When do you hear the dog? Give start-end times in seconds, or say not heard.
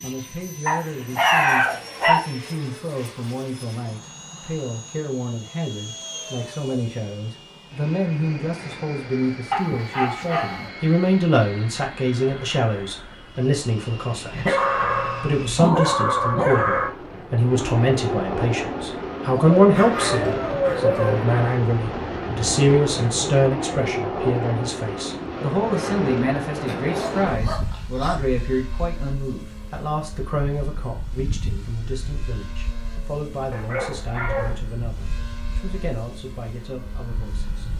0.7-2.2, 9.5-10.7, 14.3-16.9, 19.4-21.2, 26.6-28.1, 33.5-34.6.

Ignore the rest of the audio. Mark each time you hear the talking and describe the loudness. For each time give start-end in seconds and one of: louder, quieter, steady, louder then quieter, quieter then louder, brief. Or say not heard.
0.0-14.6 louder
15.2-37.6 quieter.